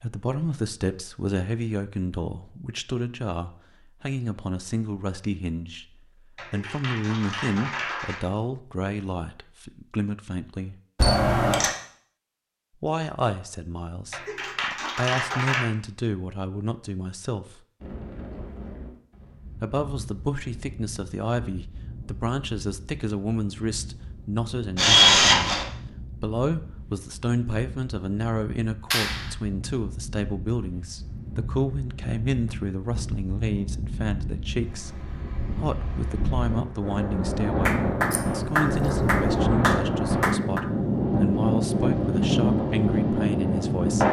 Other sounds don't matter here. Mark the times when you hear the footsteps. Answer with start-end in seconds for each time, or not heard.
not heard.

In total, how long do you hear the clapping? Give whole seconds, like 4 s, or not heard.
7 s.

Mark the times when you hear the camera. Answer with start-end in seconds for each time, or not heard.
10.9-11.7, 24.8-25.6, 38.1-39.4.